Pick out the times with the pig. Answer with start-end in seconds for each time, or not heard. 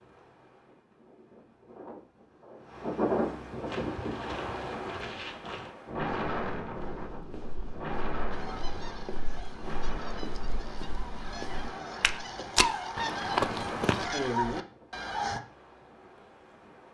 not heard.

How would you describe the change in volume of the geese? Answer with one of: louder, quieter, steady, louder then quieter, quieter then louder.
louder.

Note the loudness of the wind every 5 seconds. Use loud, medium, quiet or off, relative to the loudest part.
loud, loud, medium, quiet.